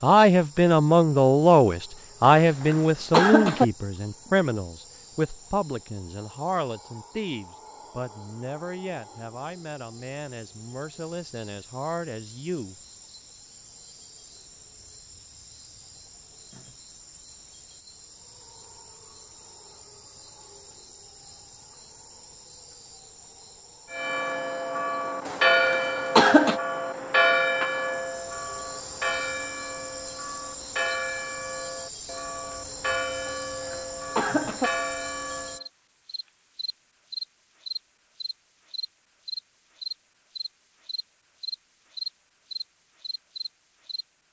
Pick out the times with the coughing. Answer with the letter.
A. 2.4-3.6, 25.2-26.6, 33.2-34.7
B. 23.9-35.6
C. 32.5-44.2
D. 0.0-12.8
A.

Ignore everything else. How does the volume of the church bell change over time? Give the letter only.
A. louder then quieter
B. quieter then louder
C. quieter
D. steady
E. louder
C.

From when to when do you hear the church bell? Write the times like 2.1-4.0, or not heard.
23.9-35.6.